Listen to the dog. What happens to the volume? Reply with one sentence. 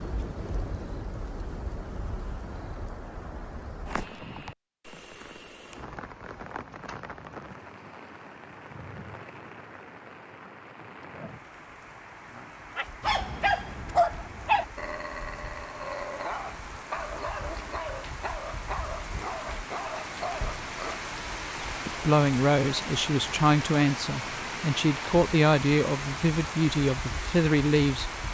The volume of the dog goes down.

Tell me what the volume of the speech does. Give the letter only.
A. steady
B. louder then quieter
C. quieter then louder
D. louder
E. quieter
A.